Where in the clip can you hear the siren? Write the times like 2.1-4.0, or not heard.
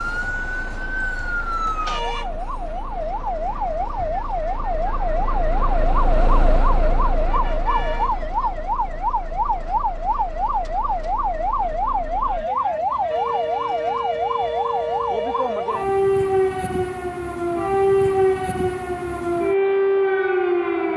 0.0-20.9.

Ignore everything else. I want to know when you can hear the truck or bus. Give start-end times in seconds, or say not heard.
0.0-12.5.